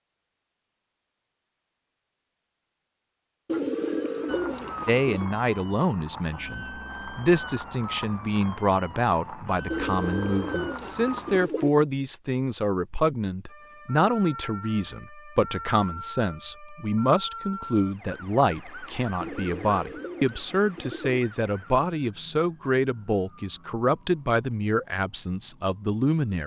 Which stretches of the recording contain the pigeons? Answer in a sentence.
You can hear the pigeons from 3.5 to 5.3 s, from 9.7 to 11.7 s and from 19.2 to 21.2 s.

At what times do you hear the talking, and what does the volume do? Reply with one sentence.
You can hear the talking from 4.8 to 26.4 s, at a steady volume.